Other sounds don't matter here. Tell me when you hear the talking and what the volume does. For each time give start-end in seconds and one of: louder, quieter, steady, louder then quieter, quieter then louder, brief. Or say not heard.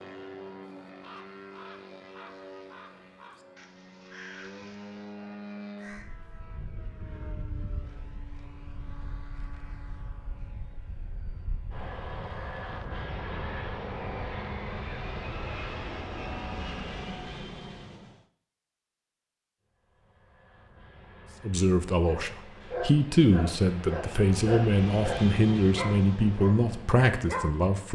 21.4-27.9 steady.